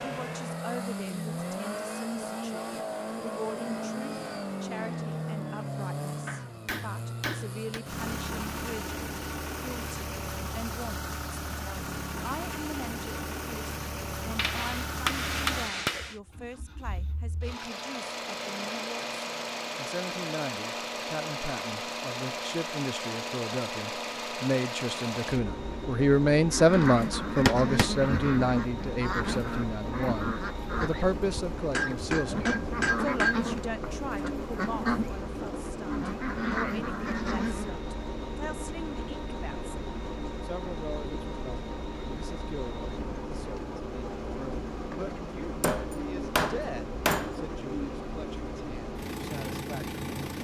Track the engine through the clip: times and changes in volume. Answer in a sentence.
The engine can be heard from 0.0 to 50.3 s, at a steady volume.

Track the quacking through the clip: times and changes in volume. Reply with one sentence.
You can hear the quacking from 26.5 to 37.8 s, at a steady volume.